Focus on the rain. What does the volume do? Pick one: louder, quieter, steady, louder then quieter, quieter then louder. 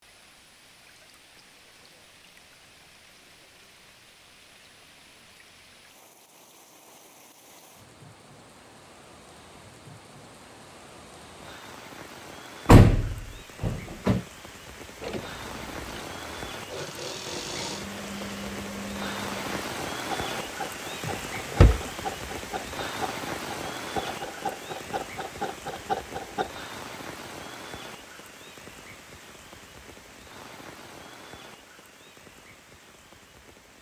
louder then quieter.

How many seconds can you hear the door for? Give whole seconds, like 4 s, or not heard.
2 s.